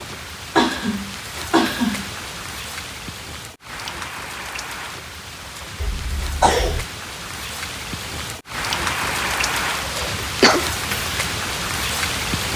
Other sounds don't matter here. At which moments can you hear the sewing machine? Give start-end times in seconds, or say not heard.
not heard.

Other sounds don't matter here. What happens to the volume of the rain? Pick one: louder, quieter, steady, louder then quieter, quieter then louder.
louder.